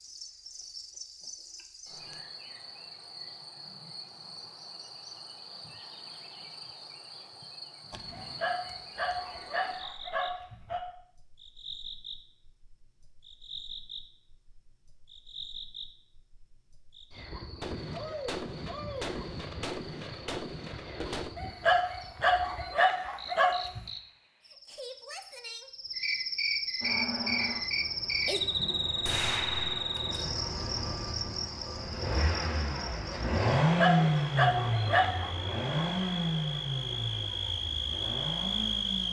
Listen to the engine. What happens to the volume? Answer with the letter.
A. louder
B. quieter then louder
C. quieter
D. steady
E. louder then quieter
E.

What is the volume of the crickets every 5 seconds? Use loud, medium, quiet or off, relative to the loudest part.
quiet, quiet, quiet, quiet, quiet, loud, medium, loud.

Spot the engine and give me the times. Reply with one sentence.
You can hear the engine from 26.8 to 39.0 s.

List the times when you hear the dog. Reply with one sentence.
The dog can be heard from 8.1 to 10.8 s, from 21.4 to 23.9 s and from 33.6 to 35.3 s.